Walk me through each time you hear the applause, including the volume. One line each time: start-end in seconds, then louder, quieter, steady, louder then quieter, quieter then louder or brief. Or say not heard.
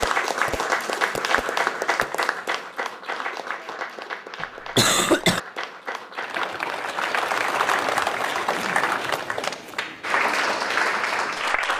0.0-11.7 quieter then louder.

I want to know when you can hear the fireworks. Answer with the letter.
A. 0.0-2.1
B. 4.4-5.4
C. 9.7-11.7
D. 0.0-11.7
A.